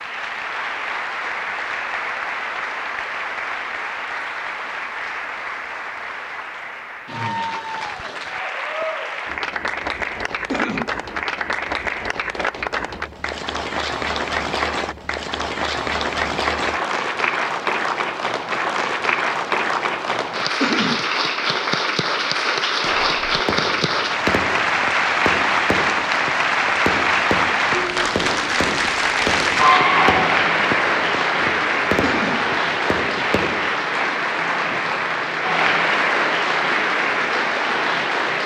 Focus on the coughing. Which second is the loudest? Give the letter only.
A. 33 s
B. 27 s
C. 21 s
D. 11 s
C.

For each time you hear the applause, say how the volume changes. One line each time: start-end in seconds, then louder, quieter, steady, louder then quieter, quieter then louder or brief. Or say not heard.
0.0-38.4 louder.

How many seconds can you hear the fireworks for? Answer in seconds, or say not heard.
11 s.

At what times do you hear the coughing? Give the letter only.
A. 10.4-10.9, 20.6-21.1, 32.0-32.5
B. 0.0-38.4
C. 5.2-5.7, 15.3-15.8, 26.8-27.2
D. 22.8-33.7
A.